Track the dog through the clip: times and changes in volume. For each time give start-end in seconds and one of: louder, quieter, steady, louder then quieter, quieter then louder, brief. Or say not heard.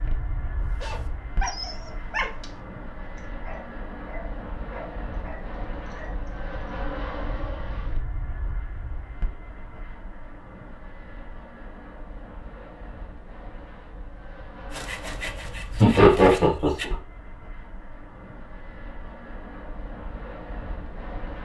0.8-6.3 quieter.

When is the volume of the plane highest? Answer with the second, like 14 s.
7 s.